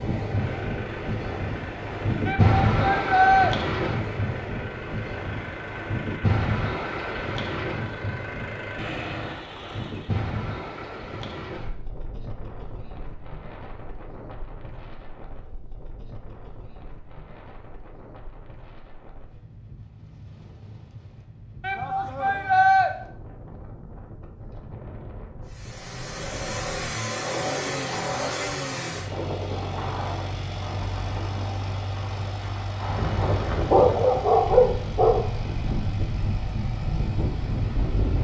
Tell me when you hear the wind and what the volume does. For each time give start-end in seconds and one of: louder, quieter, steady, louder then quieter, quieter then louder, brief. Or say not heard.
0.0-38.2 quieter then louder.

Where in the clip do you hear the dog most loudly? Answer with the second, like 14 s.
34 s.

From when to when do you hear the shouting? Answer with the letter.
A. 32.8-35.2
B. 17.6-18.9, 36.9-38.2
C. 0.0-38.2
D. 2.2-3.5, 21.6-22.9
D.